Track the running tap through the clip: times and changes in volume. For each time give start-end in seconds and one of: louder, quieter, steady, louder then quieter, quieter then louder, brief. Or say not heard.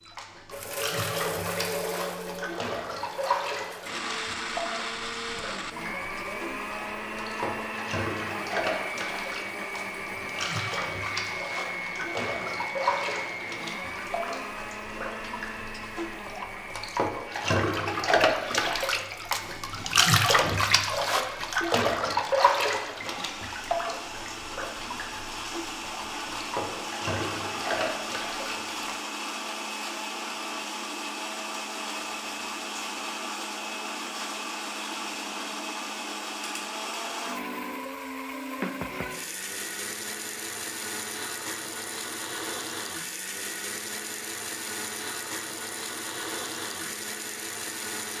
0.0-29.0 louder then quieter.